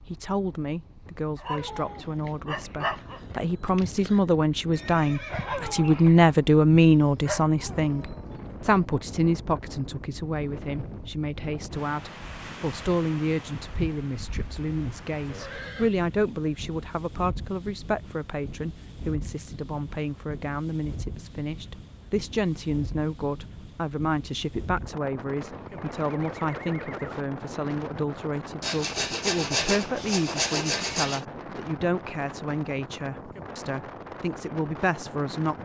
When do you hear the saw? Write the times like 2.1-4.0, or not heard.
28.6-31.2.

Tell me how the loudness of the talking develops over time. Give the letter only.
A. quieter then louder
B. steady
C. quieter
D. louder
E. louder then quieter
C.